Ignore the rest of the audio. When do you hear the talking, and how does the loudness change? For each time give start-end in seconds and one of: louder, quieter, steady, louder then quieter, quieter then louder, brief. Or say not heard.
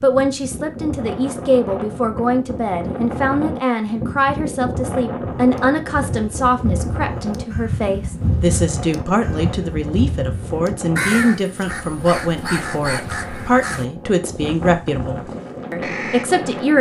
0.0-16.7 steady.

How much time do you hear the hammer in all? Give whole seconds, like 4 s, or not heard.
not heard.